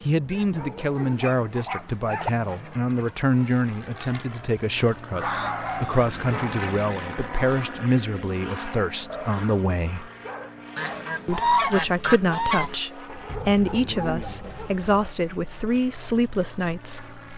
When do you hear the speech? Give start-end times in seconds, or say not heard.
0.0-10.1, 11.2-17.2.